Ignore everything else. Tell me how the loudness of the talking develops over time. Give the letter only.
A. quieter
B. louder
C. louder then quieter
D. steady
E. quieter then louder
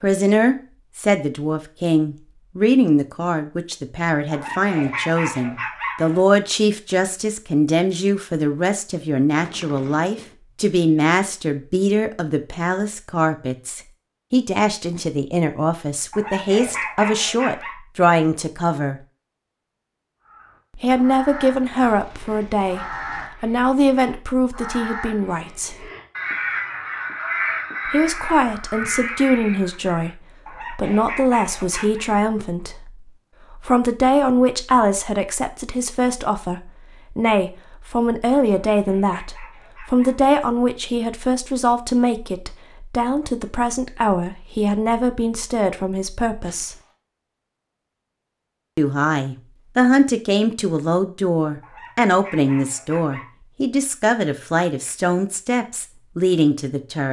D.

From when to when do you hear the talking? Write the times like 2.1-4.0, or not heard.
0.0-19.0, 20.8-25.9, 27.9-46.8, 48.8-57.0.